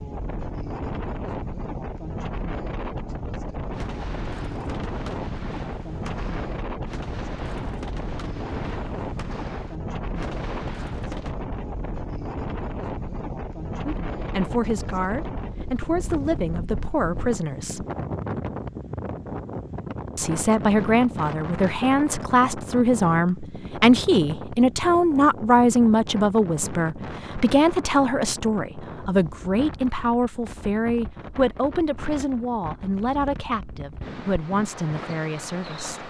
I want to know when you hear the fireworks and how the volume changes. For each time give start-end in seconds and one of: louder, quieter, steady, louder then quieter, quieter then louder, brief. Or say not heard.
3.7-11.3 steady.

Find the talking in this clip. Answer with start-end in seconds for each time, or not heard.
13.8-17.9, 20.1-36.0.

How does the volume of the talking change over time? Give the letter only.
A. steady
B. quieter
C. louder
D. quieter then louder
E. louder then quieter
E.